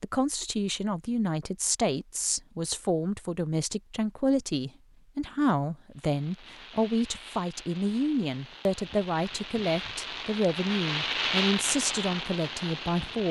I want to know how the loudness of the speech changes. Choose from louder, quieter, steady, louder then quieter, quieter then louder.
steady.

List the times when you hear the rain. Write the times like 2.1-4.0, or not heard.
5.9-13.2.